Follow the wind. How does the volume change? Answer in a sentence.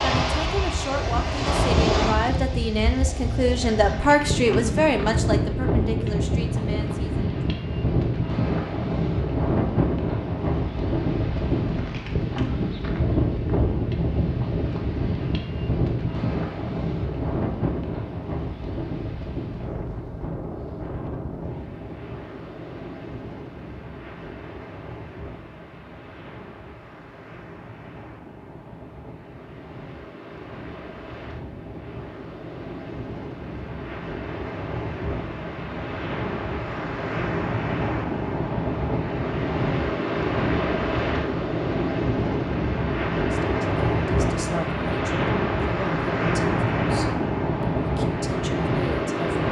The volume of the wind goes down, then up.